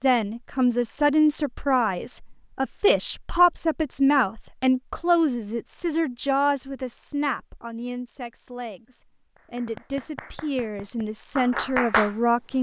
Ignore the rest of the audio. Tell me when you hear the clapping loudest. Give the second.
12 s.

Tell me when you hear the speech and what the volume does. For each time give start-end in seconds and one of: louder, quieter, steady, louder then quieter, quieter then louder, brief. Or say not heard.
0.0-12.5 quieter then louder.